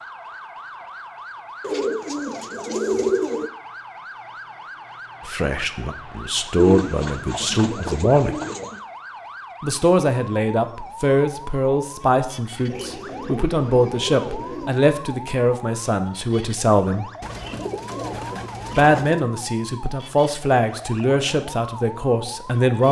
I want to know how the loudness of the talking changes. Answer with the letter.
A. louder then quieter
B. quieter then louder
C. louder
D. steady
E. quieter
D.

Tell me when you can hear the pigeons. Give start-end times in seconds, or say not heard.
1.6-3.5, 6.5-8.8, 12.7-14.7, 17.2-19.2.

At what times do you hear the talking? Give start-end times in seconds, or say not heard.
5.2-8.3, 9.6-17.1, 18.7-22.8.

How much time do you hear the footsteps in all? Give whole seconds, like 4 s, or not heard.
not heard.